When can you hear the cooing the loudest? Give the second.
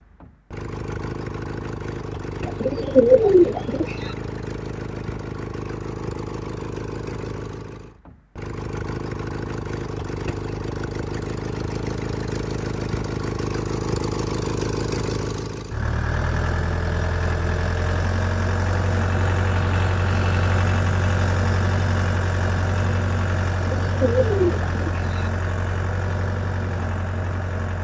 3 s.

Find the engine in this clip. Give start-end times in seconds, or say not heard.
0.0-27.7.